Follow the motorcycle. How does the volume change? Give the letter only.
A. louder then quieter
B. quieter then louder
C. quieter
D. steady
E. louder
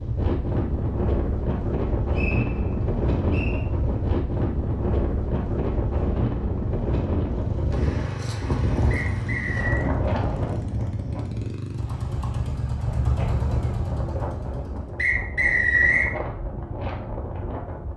D.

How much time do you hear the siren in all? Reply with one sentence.
The siren can't be heard in this clip.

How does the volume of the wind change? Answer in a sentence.
The loudness of the wind goes down.